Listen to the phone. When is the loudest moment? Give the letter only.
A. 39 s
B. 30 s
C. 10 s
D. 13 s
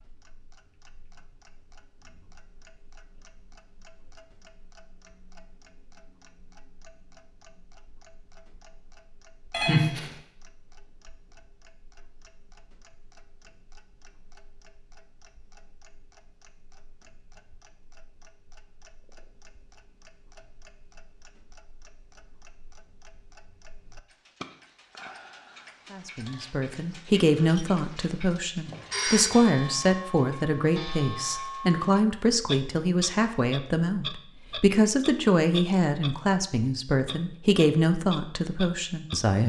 C.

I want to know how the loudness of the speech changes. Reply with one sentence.
The loudness of the speech stays about the same.